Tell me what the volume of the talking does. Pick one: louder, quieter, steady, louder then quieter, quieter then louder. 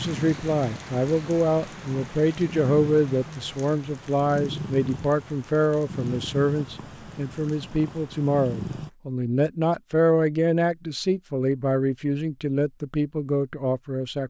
steady.